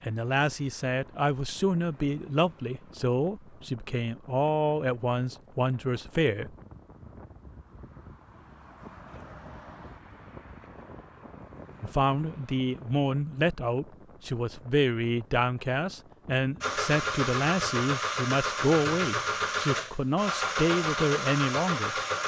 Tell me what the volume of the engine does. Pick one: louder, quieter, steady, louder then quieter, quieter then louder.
steady.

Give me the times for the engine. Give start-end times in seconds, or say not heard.
16.6-22.2.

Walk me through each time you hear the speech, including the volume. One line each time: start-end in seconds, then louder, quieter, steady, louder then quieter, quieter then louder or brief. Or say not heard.
0.0-6.5 steady
11.8-21.9 steady.